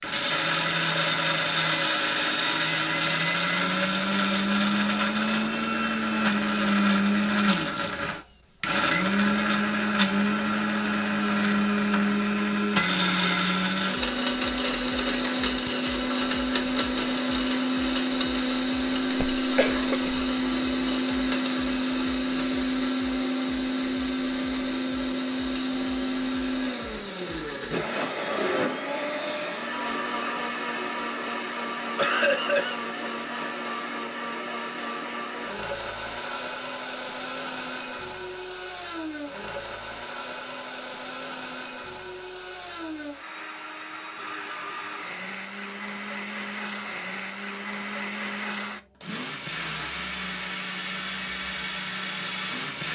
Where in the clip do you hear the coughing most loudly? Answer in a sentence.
The loudest moment of the coughing is at 32 seconds.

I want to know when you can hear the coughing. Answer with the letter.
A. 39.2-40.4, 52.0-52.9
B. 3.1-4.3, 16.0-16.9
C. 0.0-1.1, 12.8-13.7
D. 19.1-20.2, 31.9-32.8
D.